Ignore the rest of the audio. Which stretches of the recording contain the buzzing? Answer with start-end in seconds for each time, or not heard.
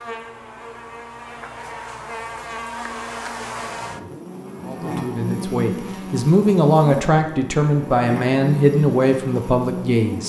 0.0-10.2.